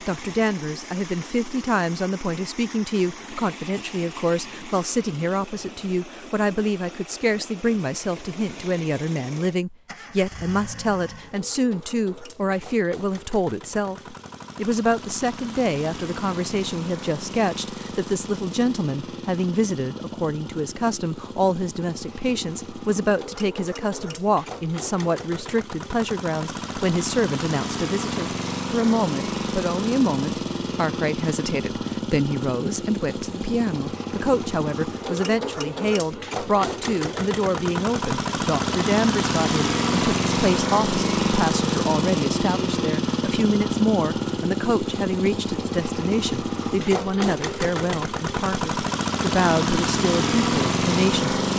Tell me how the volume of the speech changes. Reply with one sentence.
The volume of the speech stays about the same.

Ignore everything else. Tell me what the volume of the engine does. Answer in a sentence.
The volume of the engine goes up.